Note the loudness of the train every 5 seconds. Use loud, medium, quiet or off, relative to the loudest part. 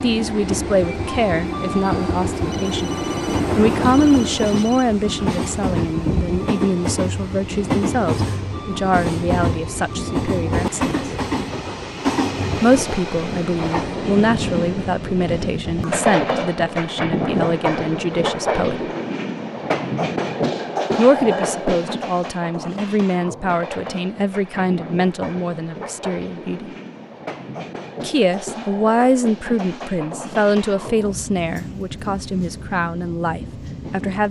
loud, loud, loud, loud, loud, medium, medium.